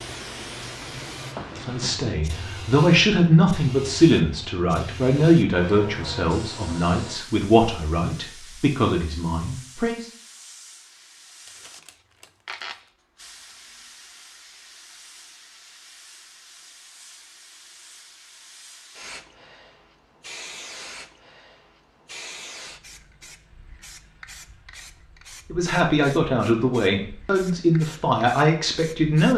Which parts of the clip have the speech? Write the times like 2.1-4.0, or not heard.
1.6-10.1, 25.5-29.3.